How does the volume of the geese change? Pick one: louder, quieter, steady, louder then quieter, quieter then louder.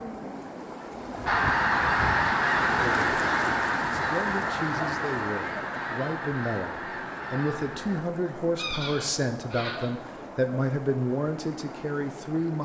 quieter.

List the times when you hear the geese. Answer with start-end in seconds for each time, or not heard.
1.2-10.2.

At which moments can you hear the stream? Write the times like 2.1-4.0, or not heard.
0.0-12.6.